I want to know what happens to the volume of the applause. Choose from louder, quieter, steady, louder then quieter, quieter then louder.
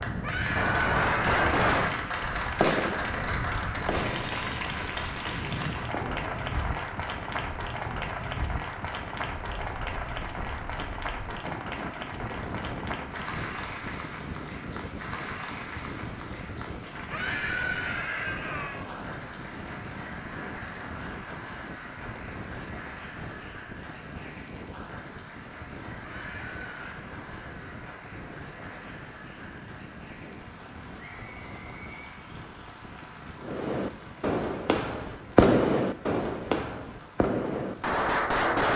quieter.